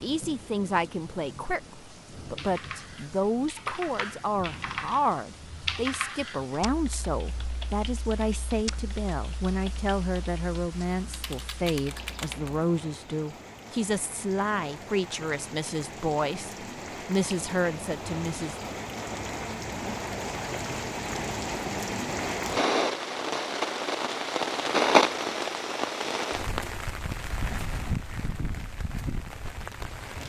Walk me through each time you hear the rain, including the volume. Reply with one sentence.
You can hear the rain from 0.0 to 30.2 s, getting louder.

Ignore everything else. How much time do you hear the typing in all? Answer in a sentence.
You can hear the typing for 10 seconds altogether.